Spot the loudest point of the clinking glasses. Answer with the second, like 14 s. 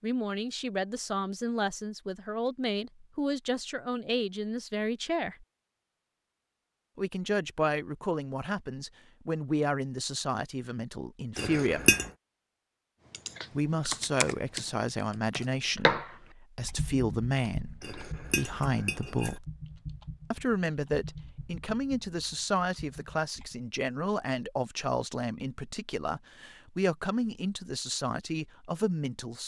12 s.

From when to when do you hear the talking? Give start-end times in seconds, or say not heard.
0.0-5.5, 7.0-11.9, 13.6-19.4, 20.3-29.4.